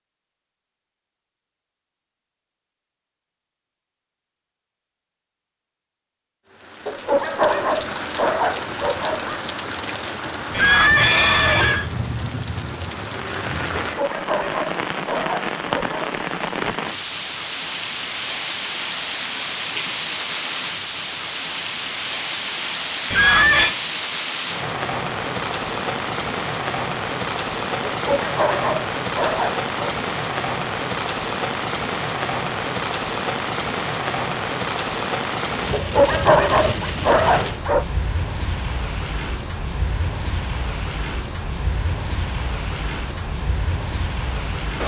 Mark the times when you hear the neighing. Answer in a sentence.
The neighing can be heard from 10.5 to 11.8 s and from 23.1 to 23.8 s.